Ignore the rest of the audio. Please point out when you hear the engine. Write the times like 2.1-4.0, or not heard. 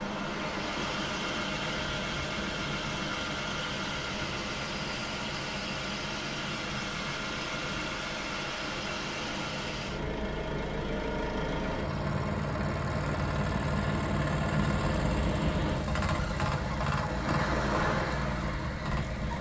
0.0-19.3.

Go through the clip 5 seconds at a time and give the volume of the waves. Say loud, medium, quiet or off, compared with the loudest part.
loud, medium, loud, loud.